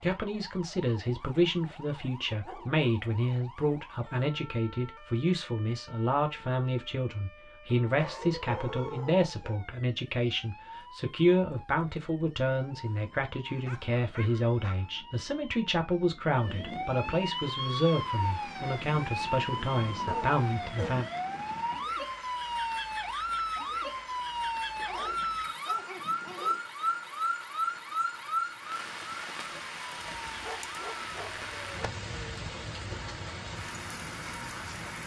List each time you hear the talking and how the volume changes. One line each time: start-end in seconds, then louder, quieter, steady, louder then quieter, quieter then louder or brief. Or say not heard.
0.0-21.1 steady.